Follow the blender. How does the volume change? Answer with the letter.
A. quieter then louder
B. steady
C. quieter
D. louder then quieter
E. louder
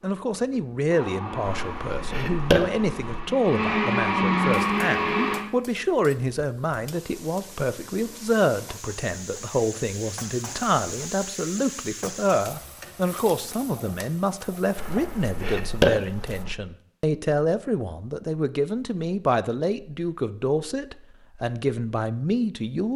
E.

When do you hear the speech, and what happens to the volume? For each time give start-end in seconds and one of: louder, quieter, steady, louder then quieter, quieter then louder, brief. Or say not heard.
0.0-22.9 steady.